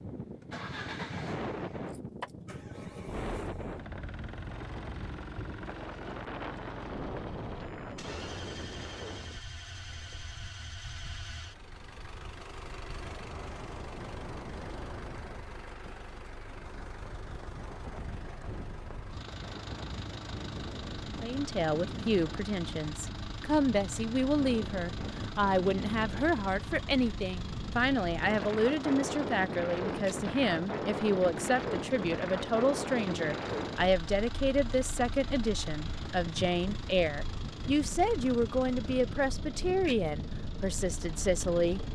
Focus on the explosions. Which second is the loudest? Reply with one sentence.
The volume of the explosions peaks at 7 seconds.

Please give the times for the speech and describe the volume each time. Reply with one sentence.
The speech can be heard from 21.2 to 41.8 s, at a steady volume.